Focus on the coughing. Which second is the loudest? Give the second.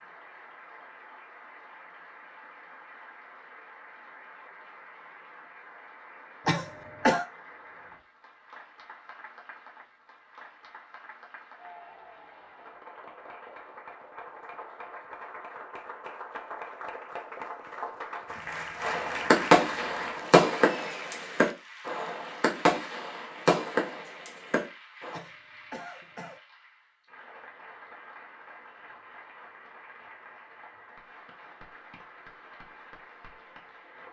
7 s.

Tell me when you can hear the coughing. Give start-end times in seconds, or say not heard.
6.5-7.2, 25.1-26.4.